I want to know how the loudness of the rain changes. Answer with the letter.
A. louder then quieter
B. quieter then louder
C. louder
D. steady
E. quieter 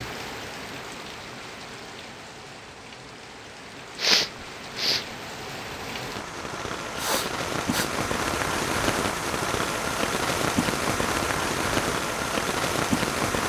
C.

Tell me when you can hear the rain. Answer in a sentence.
The rain can be heard from 0.0 to 13.4 s.